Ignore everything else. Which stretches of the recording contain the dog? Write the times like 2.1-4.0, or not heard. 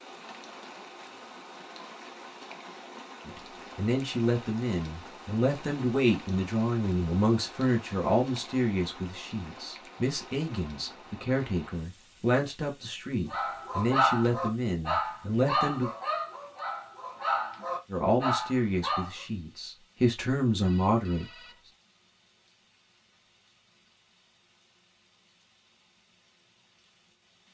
13.3-19.1.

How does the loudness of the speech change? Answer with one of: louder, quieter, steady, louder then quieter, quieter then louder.
steady.